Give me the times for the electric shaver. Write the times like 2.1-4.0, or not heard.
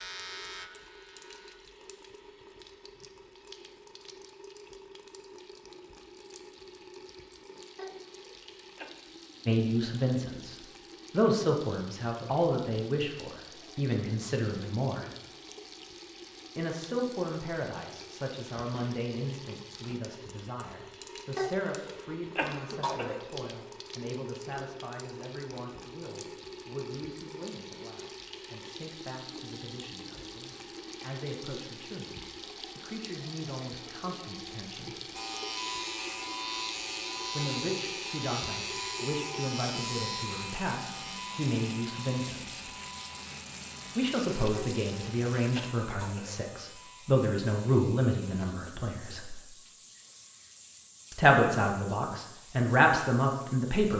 0.0-1.6, 35.1-48.5.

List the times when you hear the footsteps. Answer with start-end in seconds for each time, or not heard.
not heard.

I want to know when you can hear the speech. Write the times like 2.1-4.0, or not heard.
9.4-15.1, 16.6-35.0, 37.3-42.6, 44.0-49.4, 51.1-53.9.